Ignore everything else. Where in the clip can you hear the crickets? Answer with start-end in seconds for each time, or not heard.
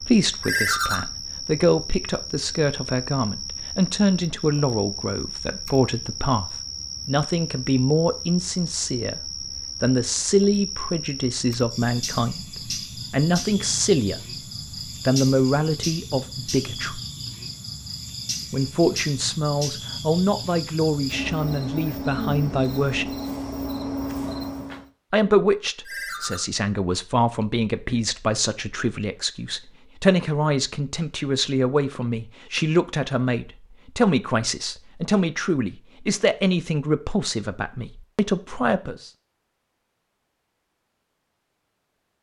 0.0-24.9.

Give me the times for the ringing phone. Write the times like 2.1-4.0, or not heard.
0.4-1.0, 25.9-26.4.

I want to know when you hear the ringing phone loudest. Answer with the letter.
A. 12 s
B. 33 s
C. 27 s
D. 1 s
D.